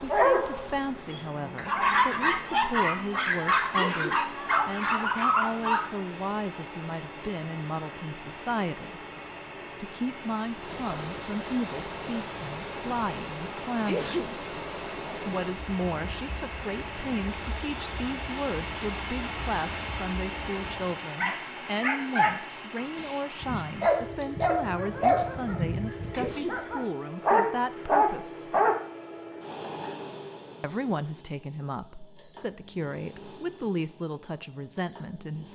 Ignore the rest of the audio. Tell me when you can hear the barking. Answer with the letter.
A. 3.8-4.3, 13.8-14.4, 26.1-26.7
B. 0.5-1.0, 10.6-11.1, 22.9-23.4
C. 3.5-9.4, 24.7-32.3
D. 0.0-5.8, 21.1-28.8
D.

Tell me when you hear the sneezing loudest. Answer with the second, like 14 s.
14 s.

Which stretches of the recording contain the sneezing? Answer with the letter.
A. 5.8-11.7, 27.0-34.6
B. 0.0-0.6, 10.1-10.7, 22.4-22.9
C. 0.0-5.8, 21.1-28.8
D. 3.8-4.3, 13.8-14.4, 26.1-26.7
D.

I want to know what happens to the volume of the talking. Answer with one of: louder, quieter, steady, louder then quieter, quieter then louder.
steady.